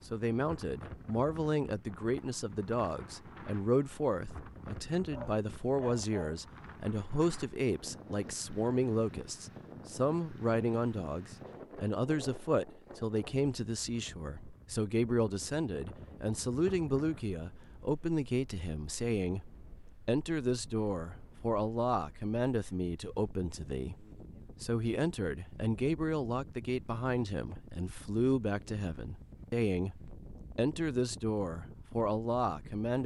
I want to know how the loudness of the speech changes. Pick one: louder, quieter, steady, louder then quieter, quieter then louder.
steady.